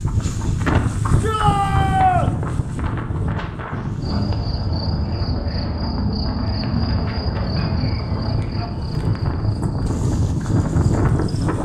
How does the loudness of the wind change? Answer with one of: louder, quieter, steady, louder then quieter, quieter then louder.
quieter then louder.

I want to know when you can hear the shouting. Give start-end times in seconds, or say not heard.
1.2-2.3.